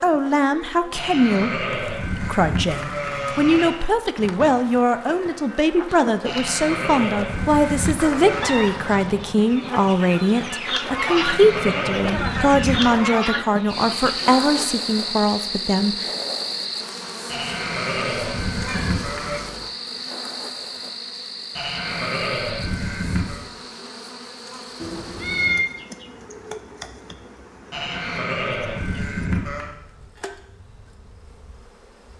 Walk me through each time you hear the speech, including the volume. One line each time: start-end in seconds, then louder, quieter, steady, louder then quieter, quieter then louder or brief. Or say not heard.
0.0-16.1 steady.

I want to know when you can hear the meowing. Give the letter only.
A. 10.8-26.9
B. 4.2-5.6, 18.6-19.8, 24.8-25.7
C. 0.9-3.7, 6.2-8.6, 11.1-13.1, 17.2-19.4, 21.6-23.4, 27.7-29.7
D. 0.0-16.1
B.